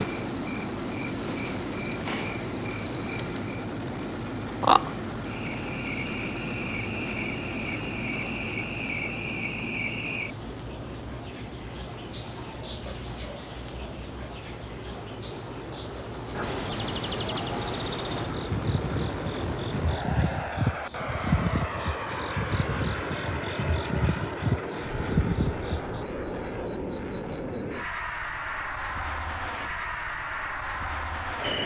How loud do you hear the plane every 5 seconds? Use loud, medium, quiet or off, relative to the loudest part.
loud, loud, medium, loud, loud, loud, loud.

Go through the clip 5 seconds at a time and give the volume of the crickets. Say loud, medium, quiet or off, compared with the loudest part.
medium, medium, loud, medium, medium, medium, medium.